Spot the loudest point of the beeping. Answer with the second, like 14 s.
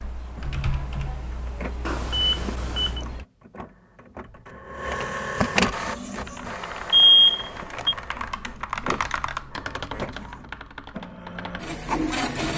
7 s.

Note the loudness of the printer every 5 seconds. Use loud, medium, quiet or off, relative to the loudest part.
medium, loud, loud.